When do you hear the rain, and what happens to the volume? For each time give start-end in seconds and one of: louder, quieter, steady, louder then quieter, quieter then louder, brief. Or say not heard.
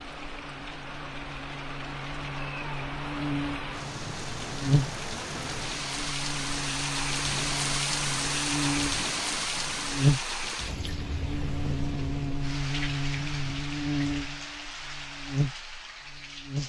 0.0-16.6 louder then quieter.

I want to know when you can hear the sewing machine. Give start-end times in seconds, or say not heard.
not heard.